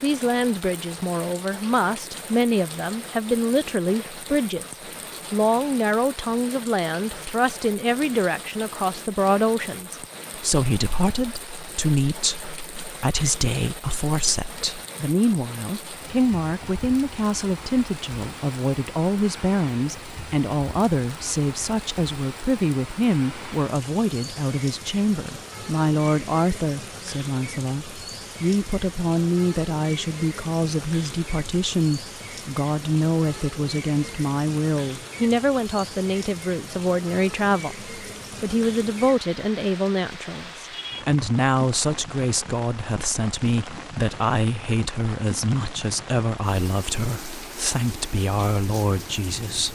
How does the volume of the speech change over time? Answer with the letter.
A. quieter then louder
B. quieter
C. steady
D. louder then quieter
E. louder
C.